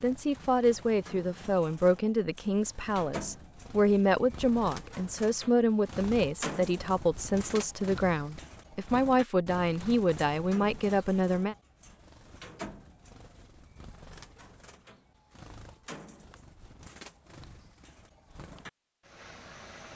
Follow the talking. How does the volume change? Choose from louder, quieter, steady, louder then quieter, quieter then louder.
steady.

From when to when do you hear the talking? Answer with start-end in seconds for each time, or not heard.
0.0-11.6.